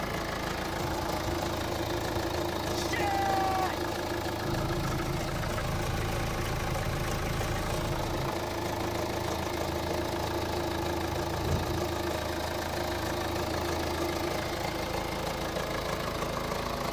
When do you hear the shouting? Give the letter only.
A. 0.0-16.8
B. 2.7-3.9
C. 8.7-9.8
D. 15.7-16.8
B.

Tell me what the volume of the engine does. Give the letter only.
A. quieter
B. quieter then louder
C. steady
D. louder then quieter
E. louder
C.